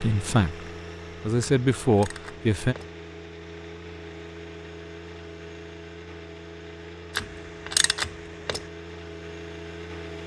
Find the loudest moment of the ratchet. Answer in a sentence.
The volume of the ratchet peaks at 8 seconds.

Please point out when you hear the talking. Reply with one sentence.
The talking can be heard from 0.0 to 2.8 s.